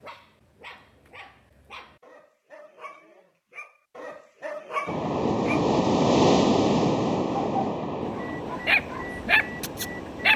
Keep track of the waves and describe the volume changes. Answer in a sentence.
The loudness of the waves goes down.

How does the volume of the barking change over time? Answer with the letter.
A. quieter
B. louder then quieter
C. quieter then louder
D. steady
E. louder
E.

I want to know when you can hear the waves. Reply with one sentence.
You can hear the waves from 4.8 to 10.3 s.